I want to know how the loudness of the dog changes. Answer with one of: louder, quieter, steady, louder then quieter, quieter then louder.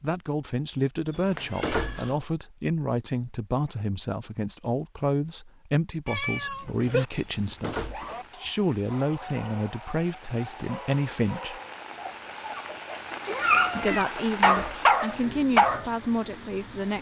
louder.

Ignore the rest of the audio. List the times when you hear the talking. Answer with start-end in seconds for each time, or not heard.
0.0-11.6, 13.8-16.9.